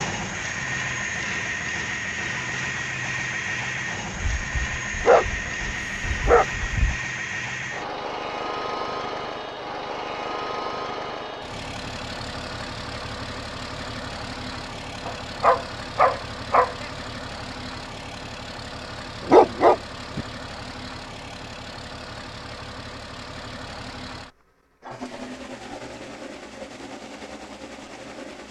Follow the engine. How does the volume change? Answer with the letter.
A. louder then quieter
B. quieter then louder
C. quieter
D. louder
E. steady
C.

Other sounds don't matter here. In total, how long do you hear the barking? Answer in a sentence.
The barking can be heard for 6 seconds in total.